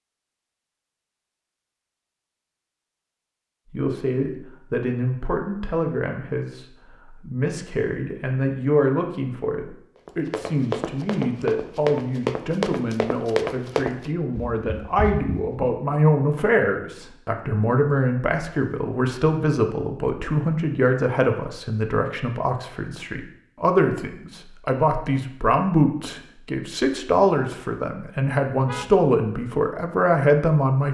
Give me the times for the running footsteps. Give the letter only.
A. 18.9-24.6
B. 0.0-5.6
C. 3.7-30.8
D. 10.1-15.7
D.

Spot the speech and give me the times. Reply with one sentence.
You can hear the speech from 3.7 to 30.8 s.